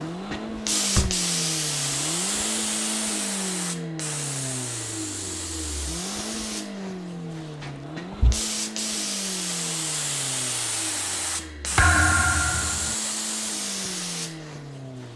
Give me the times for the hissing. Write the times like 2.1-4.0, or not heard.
0.0-15.1.